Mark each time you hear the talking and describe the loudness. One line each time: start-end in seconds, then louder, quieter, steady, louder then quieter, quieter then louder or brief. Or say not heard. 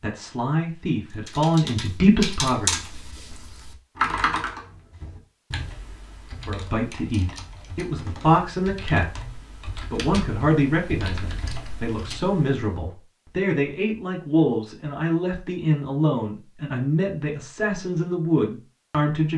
0.0-2.8 brief
6.5-19.3 steady.